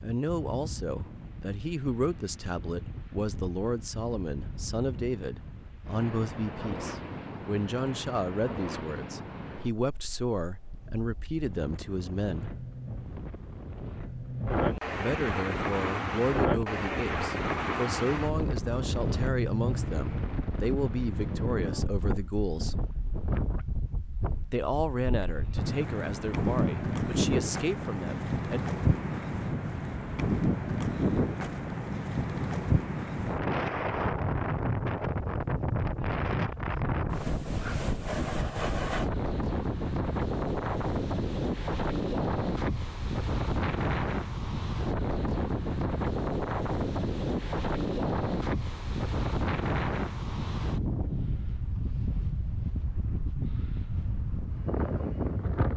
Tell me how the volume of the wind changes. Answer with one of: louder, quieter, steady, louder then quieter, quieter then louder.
louder.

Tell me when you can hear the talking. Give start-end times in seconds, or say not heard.
0.0-12.5, 14.9-22.9, 24.4-28.6.